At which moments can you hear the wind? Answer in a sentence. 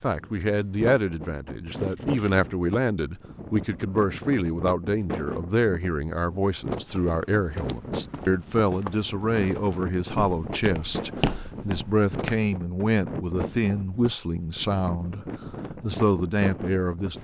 You can hear the wind from 0.1 to 17.1 s.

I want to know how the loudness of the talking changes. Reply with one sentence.
The loudness of the talking stays about the same.